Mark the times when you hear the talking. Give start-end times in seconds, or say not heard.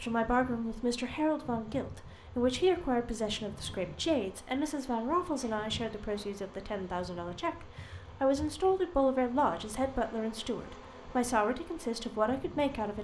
0.0-12.9.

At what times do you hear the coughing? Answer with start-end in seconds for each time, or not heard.
not heard.